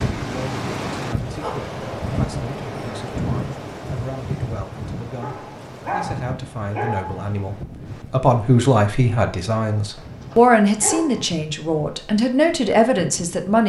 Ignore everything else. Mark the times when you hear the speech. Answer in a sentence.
The speech can be heard from 0.0 to 13.6 s.